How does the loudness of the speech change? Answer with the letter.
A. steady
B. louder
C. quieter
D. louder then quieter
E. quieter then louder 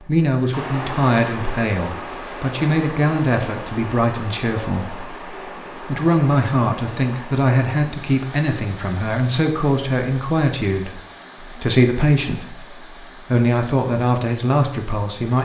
A.